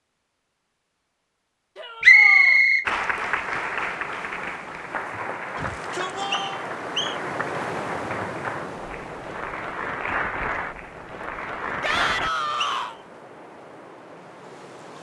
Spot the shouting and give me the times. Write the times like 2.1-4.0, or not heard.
1.8-2.6, 5.5-6.7, 11.8-12.9.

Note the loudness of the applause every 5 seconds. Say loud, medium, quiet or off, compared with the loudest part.
loud, medium, loud.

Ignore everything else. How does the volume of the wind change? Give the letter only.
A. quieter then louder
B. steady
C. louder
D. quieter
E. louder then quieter
E.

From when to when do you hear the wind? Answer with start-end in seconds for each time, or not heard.
2.8-14.9.